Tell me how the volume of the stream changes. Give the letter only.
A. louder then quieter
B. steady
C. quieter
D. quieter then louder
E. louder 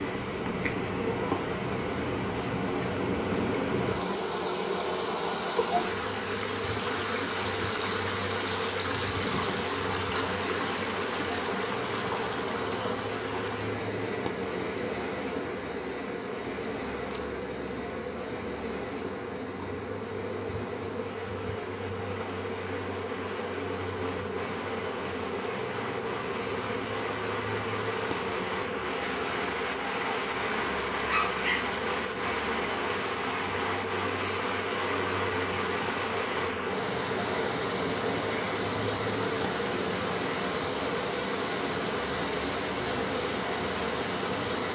D.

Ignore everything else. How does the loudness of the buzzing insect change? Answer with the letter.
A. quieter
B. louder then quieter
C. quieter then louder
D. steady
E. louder
D.